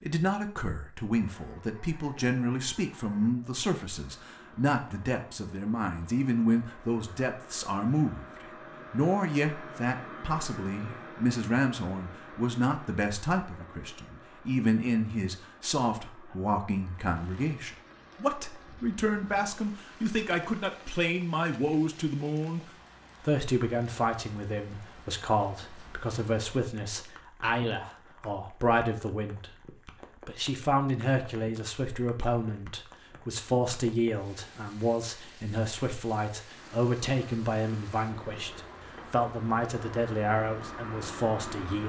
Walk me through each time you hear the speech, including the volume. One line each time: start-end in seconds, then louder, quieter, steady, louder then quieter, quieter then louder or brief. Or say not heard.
0.0-41.8 steady.